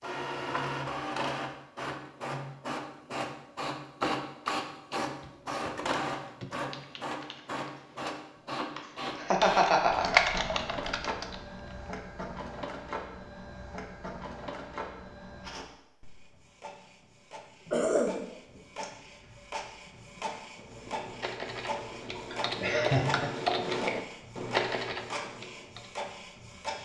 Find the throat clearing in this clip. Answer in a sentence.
The throat clearing can be heard from 17.6 to 18.6 s.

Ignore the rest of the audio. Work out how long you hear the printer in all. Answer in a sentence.
The printer can be heard for 27 seconds in total.